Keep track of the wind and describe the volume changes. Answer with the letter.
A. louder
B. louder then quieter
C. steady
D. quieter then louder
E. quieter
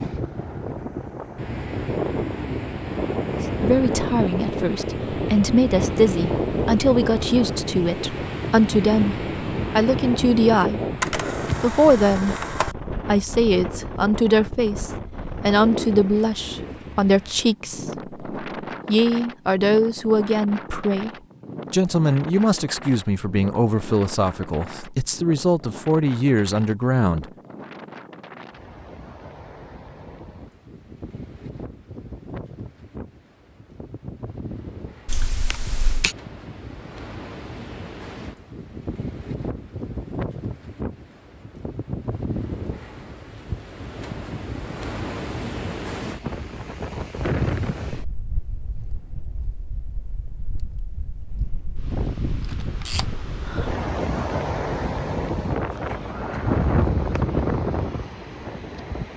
D.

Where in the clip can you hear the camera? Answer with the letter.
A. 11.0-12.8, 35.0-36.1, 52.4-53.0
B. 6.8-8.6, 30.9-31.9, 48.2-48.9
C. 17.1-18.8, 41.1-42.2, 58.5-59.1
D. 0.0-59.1
A.